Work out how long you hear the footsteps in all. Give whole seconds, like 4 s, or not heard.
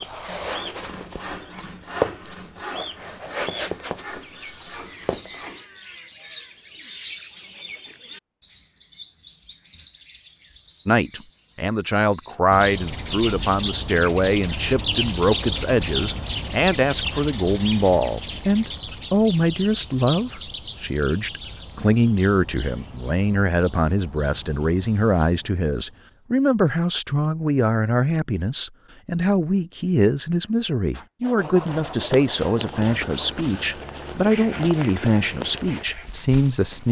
11 s.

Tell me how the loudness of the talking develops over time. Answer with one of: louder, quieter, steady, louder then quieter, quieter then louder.
steady.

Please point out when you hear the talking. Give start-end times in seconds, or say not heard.
10.8-36.8.